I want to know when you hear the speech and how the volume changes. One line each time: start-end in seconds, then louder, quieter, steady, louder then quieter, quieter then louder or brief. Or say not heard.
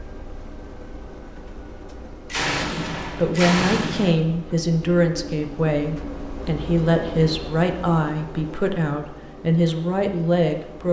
3.0-10.8 steady.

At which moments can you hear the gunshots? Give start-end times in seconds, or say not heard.
2.3-4.1.